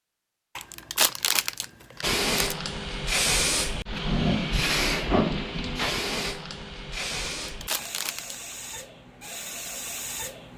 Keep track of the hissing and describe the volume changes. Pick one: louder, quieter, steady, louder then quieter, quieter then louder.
quieter.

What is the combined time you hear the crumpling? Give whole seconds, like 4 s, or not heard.
3 s.